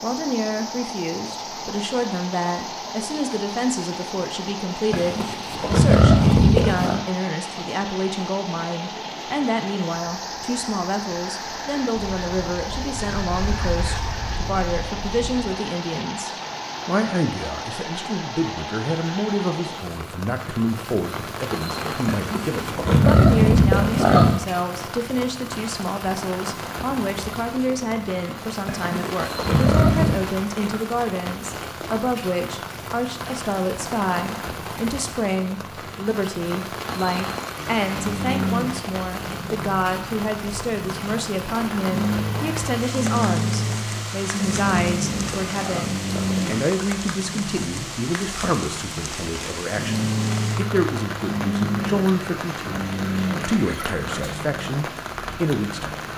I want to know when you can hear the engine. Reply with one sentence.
The engine can be heard from 37.5 to 56.1 s.